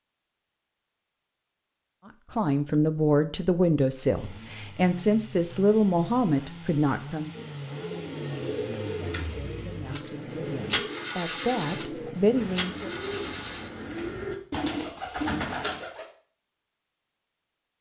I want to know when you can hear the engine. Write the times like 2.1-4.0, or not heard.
4.1-13.8.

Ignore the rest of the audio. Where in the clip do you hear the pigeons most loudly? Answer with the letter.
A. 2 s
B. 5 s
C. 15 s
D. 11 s
C.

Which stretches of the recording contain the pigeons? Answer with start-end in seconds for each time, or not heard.
7.3-16.1.